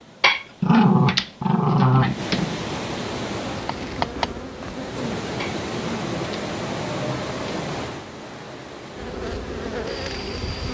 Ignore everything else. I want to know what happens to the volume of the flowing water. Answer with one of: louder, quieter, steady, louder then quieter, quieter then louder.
louder then quieter.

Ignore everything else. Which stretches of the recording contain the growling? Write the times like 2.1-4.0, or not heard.
0.2-2.5, 5.3-7.9.